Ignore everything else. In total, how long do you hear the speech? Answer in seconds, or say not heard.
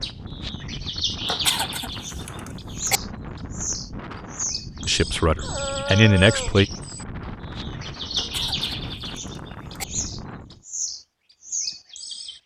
2 s.